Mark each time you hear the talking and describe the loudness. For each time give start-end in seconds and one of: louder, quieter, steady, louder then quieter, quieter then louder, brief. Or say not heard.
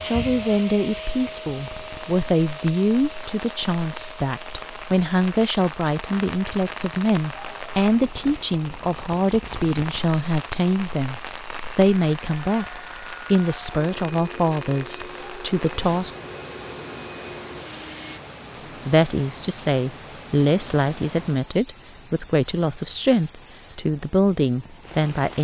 0.0-16.1 steady
18.9-25.3 steady.